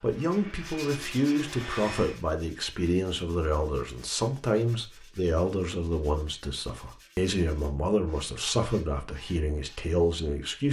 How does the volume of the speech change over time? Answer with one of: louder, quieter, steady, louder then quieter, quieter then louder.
steady.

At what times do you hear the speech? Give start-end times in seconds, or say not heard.
0.0-10.6.